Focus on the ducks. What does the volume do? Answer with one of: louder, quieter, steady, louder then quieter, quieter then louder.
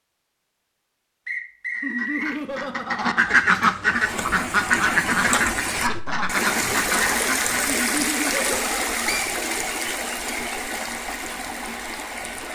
louder then quieter.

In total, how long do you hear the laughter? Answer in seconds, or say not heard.
3 s.